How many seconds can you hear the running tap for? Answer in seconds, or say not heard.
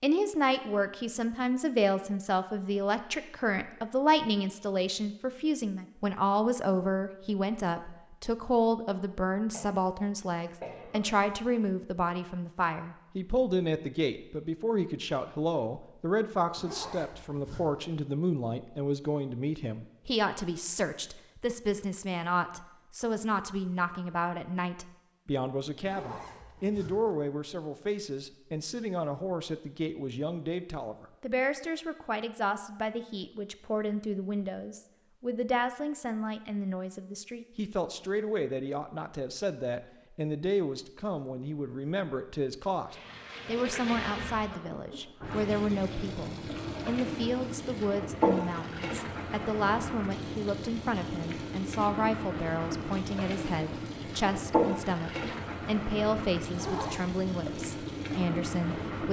16 s.